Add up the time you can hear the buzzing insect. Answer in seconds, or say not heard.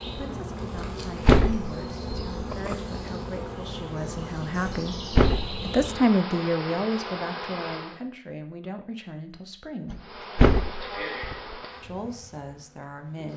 11 s.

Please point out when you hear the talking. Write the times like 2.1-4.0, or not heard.
0.1-5.0, 5.7-10.0, 11.8-13.3.